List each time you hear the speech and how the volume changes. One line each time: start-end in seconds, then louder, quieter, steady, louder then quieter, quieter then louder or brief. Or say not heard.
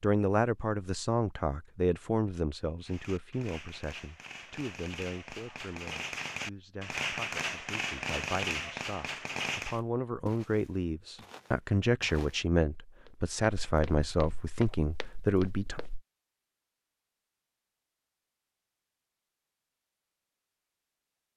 0.0-15.8 quieter then louder.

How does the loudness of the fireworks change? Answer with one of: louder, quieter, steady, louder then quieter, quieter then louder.
louder.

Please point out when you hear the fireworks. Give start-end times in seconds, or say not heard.
2.8-9.8.